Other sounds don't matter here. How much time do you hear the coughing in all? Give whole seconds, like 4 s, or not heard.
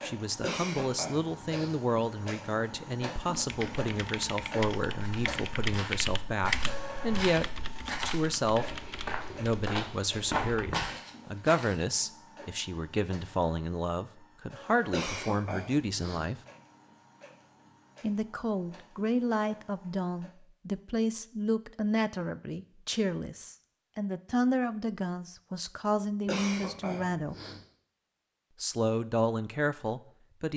4 s.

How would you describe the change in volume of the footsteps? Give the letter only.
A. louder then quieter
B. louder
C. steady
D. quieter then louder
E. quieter
B.